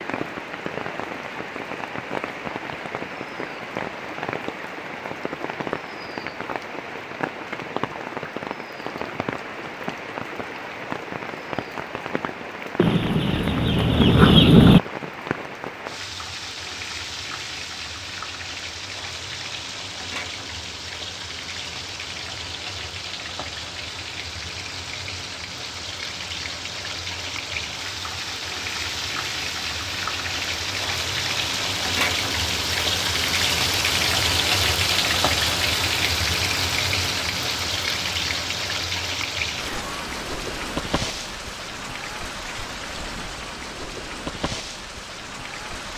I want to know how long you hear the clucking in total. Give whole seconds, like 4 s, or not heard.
2 s.